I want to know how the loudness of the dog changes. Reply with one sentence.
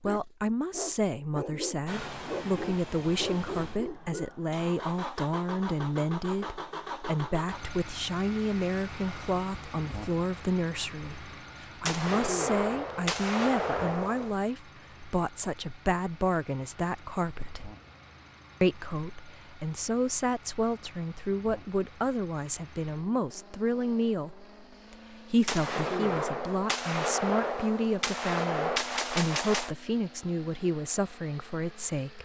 The volume of the dog stays about the same.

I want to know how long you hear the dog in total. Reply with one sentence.
The dog can be heard for 4 seconds in total.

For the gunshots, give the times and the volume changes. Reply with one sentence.
You can hear the gunshots briefly from 11.8 to 14.3 s; and from 25.4 to 29.8 s, at a steady volume.